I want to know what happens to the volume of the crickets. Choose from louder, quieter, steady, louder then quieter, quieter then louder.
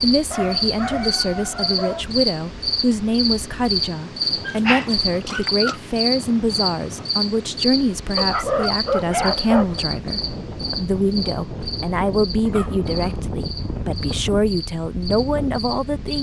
quieter.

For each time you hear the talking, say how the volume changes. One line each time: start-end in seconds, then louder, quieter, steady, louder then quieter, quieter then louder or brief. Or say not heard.
0.0-16.1 steady.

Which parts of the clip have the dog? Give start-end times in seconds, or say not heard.
0.3-2.0, 4.5-5.8, 8.2-9.8, 12.4-14.3.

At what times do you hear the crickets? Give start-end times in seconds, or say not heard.
0.0-16.1.